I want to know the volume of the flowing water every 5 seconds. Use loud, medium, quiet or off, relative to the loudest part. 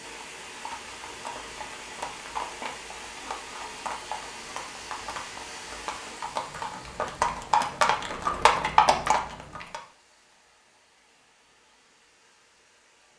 loud, loud, quiet.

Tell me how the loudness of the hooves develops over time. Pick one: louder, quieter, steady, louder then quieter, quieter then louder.
louder.